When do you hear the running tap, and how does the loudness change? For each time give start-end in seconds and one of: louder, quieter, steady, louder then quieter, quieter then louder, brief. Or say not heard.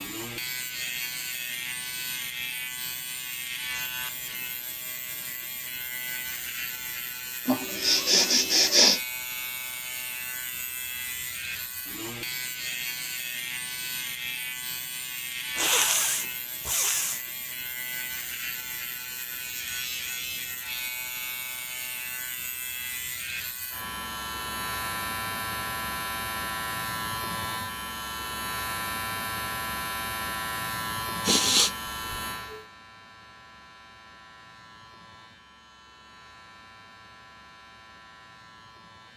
not heard.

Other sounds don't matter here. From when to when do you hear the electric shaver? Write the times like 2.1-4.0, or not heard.
0.0-39.1.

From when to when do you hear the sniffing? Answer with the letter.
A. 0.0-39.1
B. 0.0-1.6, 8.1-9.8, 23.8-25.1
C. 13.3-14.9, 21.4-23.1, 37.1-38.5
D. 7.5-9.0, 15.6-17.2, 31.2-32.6
D.